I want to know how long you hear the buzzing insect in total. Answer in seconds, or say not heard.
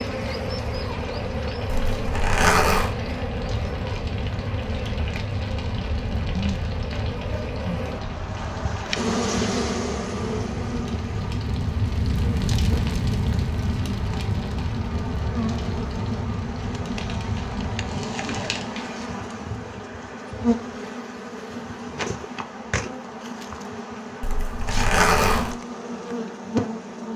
27 s.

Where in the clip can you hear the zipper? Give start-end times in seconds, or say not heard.
1.6-3.0, 24.2-25.6.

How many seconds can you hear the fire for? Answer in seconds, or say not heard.
19 s.